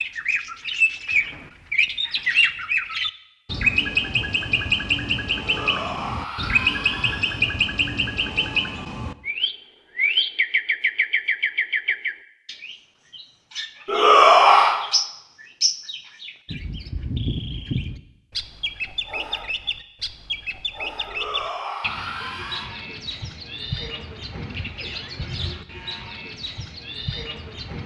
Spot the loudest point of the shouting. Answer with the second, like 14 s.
14 s.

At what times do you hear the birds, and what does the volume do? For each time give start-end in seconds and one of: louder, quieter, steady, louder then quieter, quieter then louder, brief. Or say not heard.
0.0-27.8 quieter.